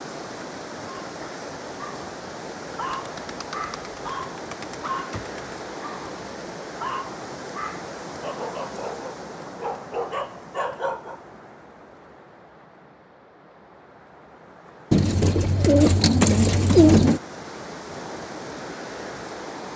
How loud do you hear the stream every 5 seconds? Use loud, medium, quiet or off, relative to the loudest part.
loud, loud, medium, loud.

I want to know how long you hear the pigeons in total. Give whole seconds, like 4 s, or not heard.
5 s.